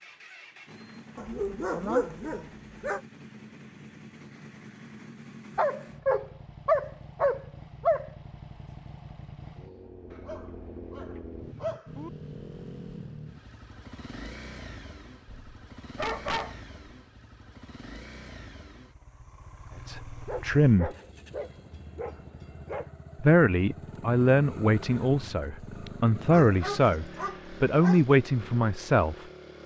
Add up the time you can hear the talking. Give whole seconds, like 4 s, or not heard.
7 s.